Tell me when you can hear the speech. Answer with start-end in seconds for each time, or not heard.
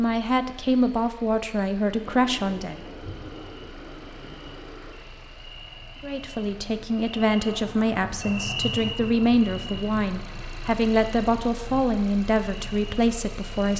0.0-2.8, 6.0-13.7.